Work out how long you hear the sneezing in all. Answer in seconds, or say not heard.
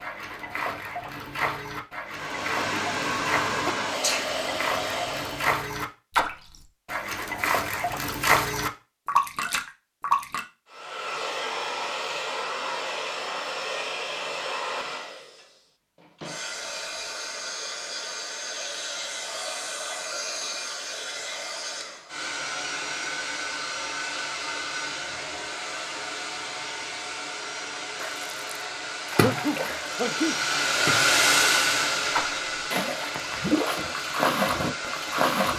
2 s.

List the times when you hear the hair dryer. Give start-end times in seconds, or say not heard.
2.0-5.6, 10.7-35.5.